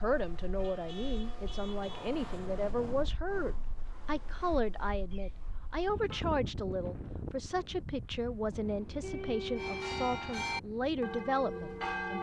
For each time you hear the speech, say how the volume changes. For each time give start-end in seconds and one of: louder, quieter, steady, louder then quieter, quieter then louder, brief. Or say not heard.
0.0-12.1 steady.